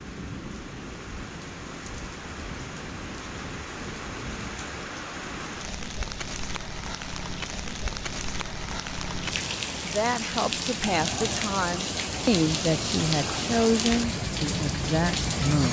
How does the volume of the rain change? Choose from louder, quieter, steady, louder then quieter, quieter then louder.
louder.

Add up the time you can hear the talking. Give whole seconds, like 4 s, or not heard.
6 s.